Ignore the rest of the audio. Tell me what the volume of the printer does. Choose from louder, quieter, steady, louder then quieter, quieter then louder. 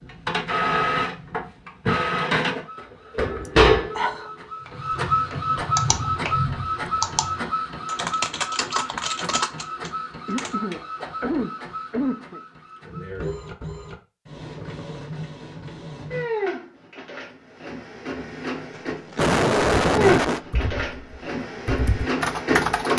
quieter then louder.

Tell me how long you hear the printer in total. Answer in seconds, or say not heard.
23 s.